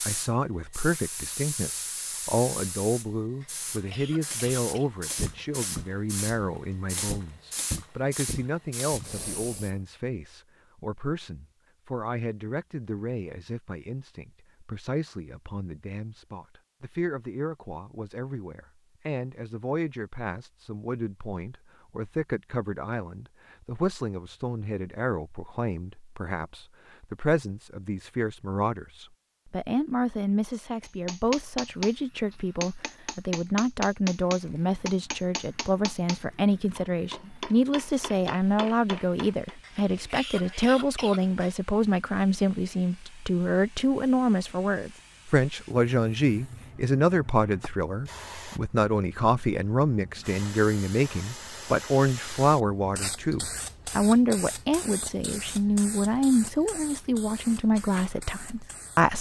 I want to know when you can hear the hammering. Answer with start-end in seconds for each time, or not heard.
30.8-39.5.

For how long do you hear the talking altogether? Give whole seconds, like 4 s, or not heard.
59 s.